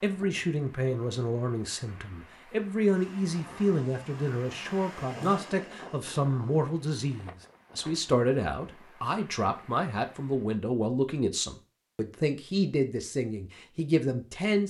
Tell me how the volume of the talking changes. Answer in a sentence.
The loudness of the talking stays about the same.